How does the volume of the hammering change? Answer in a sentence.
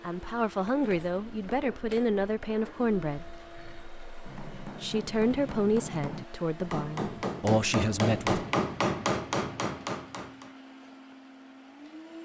The loudness of the hammering goes up.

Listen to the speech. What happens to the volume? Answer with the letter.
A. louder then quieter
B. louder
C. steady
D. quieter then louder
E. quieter
C.